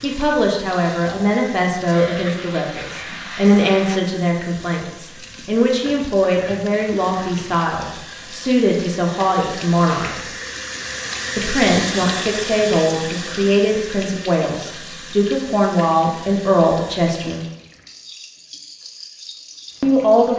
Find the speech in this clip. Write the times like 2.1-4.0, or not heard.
0.0-10.2, 11.3-17.4, 19.8-20.3.